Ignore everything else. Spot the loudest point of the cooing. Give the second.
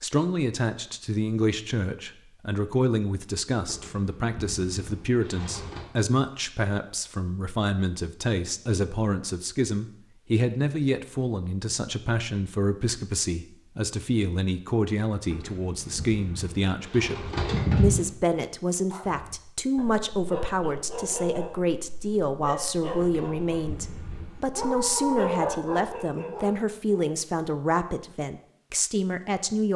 18 s.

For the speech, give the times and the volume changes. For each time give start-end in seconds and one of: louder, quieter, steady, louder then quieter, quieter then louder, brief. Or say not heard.
0.0-29.7 steady.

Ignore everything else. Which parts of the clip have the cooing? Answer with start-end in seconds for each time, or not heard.
3.6-5.8, 15.3-18.1, 22.9-24.5.